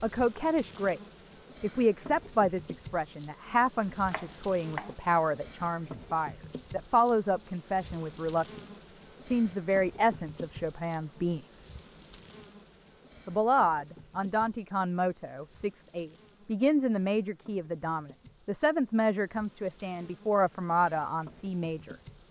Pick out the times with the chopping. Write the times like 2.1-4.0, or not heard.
4.0-5.0.